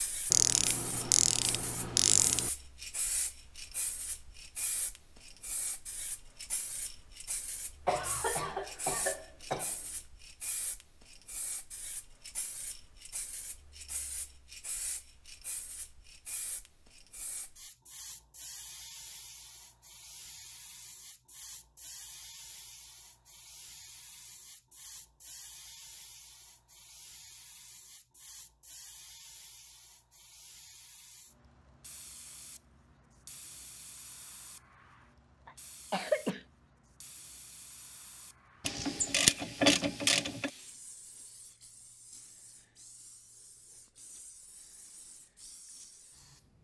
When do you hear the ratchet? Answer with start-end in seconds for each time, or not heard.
0.3-2.5, 38.6-40.5.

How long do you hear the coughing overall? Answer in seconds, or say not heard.
3 s.